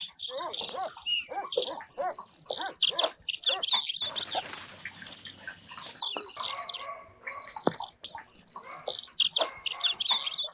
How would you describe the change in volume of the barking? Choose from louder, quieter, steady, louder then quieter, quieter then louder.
quieter.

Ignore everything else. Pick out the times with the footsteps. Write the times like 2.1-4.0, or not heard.
not heard.